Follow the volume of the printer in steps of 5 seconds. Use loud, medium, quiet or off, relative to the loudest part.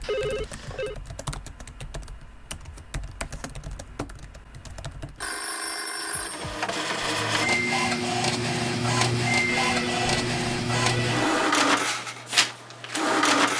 off, loud, loud.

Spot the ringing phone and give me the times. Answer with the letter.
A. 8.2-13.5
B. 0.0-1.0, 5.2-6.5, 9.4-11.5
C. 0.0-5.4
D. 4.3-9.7
B.